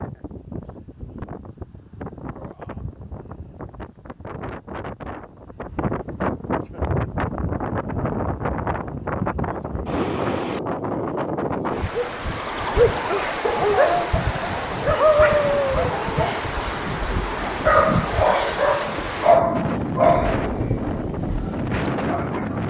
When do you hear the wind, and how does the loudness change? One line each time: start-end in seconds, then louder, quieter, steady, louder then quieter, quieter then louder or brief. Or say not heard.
0.0-22.6 louder.